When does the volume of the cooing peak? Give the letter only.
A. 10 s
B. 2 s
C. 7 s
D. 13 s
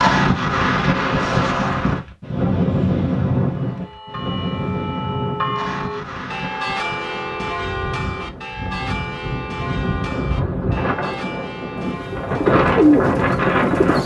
D.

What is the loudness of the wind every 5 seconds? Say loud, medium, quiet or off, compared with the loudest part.
loud, medium, loud.